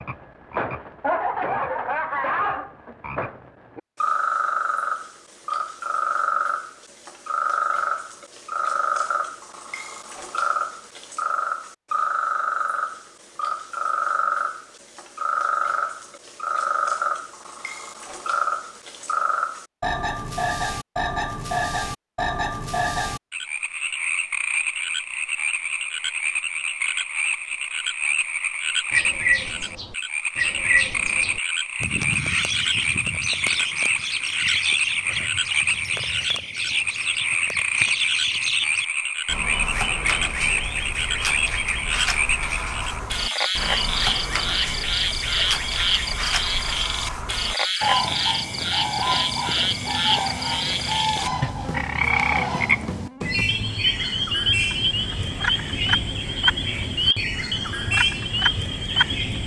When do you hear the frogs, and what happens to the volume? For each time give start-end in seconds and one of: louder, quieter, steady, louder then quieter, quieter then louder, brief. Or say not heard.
0.0-59.4 steady.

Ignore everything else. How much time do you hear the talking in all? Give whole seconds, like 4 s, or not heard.
not heard.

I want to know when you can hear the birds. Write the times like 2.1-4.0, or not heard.
28.9-59.4.